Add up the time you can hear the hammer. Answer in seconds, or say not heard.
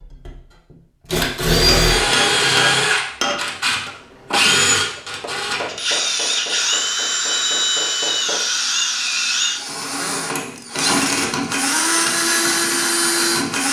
7 s.